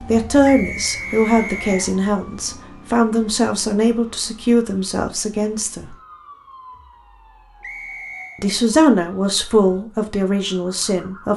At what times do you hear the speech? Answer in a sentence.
You can hear the speech from 0.0 to 6.0 s and from 8.4 to 11.3 s.